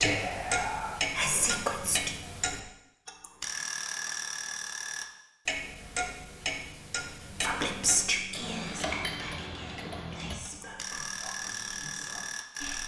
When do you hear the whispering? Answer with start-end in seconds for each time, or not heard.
0.0-2.1, 7.3-12.8.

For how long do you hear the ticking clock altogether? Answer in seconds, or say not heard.
13 s.